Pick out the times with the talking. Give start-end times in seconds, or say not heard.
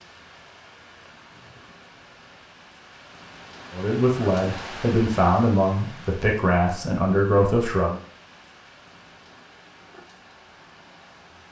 3.7-8.0.